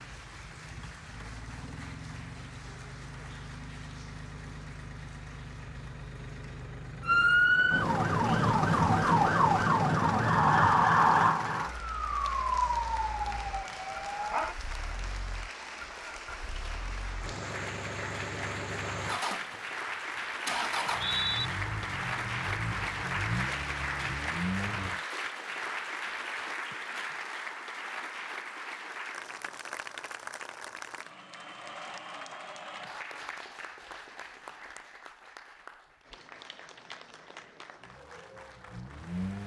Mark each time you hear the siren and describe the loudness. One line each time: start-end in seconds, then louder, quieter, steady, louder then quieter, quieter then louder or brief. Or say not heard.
7.0-14.6 quieter.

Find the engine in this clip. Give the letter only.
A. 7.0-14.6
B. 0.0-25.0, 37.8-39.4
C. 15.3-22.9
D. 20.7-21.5
B.